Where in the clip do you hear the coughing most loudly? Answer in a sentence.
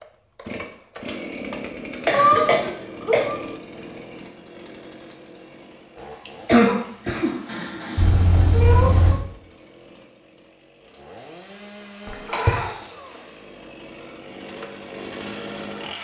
The volume of the coughing peaks at 7 seconds.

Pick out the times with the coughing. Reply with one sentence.
You can hear the coughing from 1.9 to 3.2 s, from 6.2 to 8.2 s and from 10.9 to 13.2 s.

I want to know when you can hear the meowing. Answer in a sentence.
You can hear the meowing from 2.1 to 3.4 s, from 8.0 to 9.2 s and from 12.1 to 12.7 s.